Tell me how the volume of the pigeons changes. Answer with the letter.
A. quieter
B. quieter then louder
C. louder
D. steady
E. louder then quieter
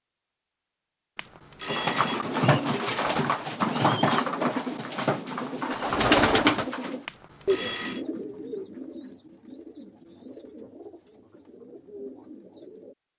A.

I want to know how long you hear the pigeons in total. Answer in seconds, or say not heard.
11 s.